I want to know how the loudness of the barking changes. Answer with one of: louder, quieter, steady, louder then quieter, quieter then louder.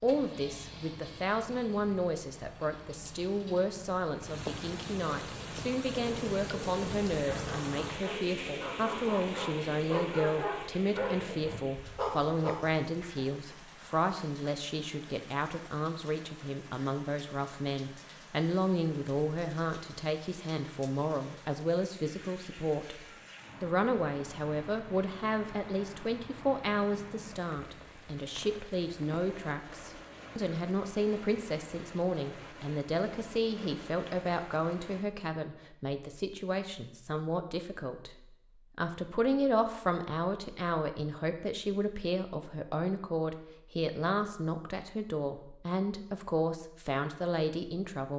louder.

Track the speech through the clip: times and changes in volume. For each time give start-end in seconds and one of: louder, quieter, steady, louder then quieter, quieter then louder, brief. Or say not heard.
0.0-48.1 steady.